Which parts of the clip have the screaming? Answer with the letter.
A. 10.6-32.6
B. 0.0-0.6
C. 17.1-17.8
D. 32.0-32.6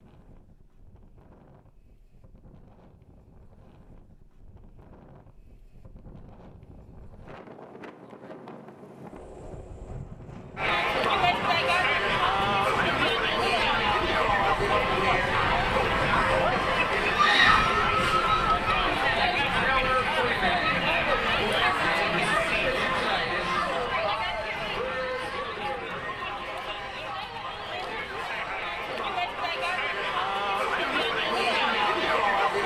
C.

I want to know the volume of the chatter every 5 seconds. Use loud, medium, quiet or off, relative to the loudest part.
off, off, loud, loud, loud, medium, loud.